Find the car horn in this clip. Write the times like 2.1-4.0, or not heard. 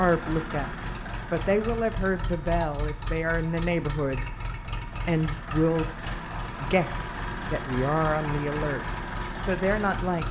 not heard.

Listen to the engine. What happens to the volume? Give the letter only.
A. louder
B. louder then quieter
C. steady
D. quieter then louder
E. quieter
C.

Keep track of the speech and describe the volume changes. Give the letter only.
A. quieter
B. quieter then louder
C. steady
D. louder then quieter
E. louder
C.